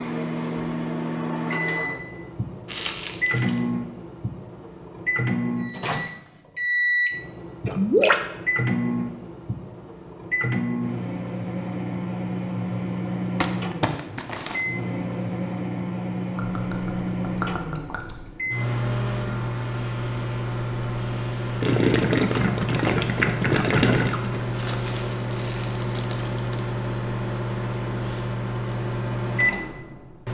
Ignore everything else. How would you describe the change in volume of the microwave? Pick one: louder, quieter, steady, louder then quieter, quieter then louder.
steady.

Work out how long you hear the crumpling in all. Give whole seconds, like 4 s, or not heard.
4 s.